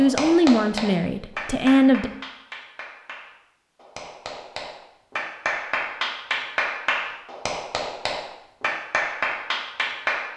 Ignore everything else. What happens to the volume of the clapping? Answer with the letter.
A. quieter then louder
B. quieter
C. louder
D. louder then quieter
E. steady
A.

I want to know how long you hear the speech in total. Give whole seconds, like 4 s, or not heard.
2 s.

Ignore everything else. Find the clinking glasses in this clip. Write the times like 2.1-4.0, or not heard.
not heard.